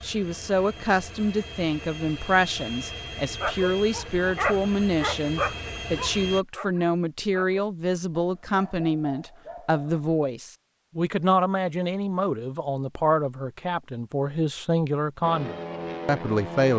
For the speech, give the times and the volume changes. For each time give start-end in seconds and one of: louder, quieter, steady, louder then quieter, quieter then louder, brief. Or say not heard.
0.0-16.7 steady.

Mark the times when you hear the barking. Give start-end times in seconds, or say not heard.
3.4-10.1.